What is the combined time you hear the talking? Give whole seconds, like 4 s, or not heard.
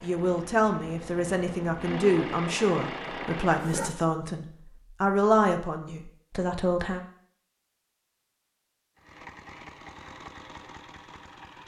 7 s.